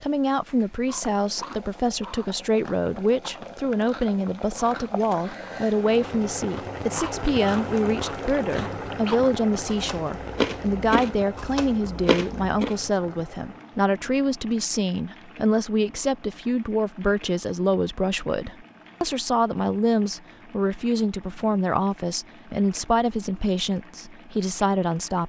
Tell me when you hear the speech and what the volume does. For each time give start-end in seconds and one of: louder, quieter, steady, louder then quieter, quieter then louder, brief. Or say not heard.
0.0-25.2 steady.